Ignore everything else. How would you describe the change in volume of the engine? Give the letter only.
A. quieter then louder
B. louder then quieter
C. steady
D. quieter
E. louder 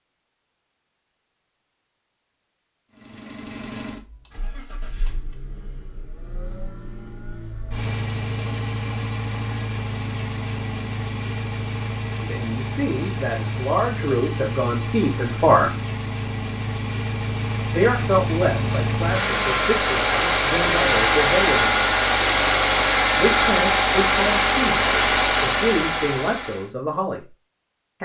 E.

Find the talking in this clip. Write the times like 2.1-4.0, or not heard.
12.2-15.7, 17.7-21.9, 23.1-27.4.